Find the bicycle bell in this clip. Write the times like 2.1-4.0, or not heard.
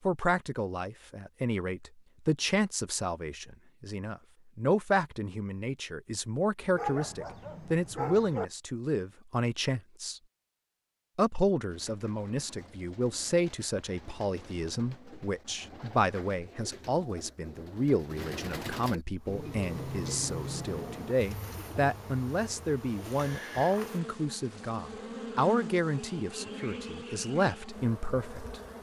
not heard.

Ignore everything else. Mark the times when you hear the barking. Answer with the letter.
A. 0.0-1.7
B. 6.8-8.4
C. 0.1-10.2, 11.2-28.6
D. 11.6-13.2
B.